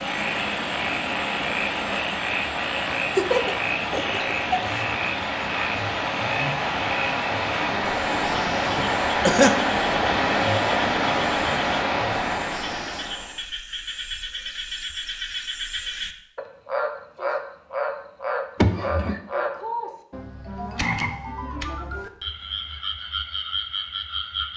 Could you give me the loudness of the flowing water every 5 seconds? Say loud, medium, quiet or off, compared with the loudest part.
medium, loud, loud, off, off.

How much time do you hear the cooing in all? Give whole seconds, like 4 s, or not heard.
not heard.